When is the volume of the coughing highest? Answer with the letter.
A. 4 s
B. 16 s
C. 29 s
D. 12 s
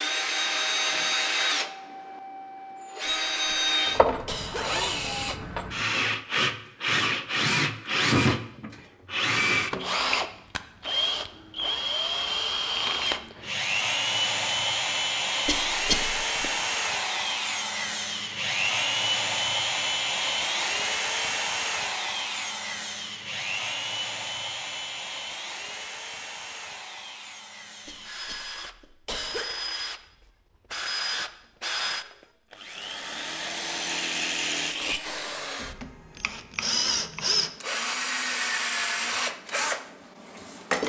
B.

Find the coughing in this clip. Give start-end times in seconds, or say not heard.
3.0-4.8, 15.4-16.5, 27.9-29.6.